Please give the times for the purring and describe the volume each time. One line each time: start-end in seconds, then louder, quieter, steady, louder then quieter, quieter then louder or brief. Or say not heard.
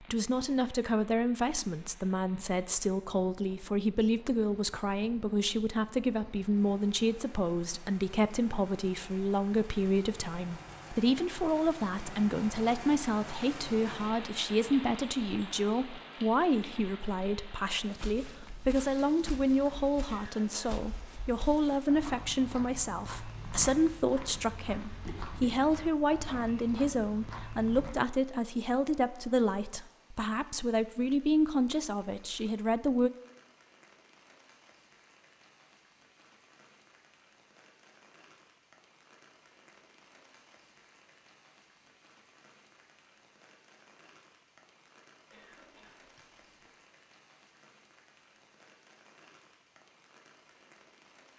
not heard.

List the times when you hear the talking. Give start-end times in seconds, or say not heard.
0.0-33.1.